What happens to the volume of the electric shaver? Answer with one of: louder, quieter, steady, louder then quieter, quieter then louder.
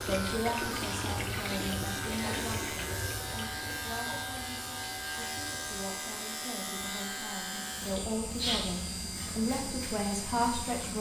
steady.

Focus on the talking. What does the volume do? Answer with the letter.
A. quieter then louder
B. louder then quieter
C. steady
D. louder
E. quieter
A.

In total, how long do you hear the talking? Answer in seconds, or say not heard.
11 s.